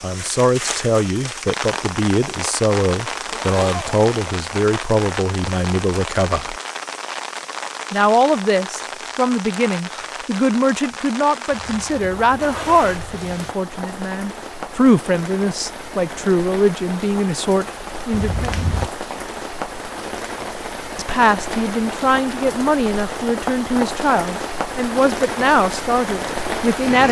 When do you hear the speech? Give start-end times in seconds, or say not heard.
0.0-6.5, 7.9-18.6, 20.9-27.0.